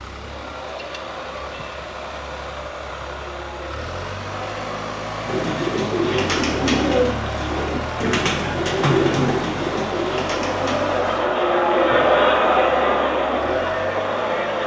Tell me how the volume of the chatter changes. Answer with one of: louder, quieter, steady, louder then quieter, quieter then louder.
louder.